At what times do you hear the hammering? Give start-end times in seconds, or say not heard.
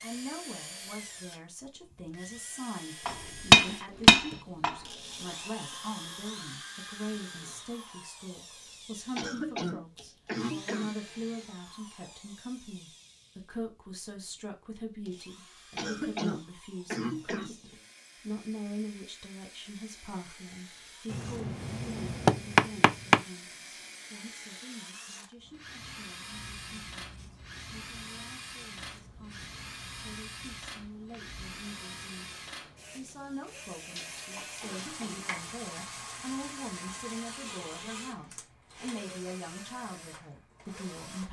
3.0-4.8, 21.1-23.2, 34.0-35.5.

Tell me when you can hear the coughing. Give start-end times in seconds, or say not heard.
9.2-10.9, 15.8-17.6, 34.6-35.3.